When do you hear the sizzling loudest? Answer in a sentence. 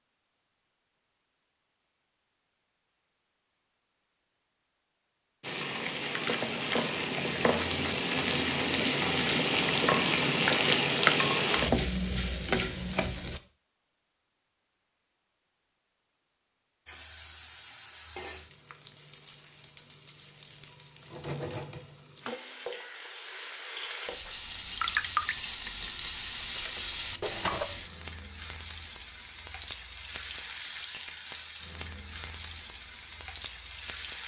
The volume of the sizzling peaks at 11 seconds.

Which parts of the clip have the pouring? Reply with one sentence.
The pouring can be heard from 24.5 to 25.4 s.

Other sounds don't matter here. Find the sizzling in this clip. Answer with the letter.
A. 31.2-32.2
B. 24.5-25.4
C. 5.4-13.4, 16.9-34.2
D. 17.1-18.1
C.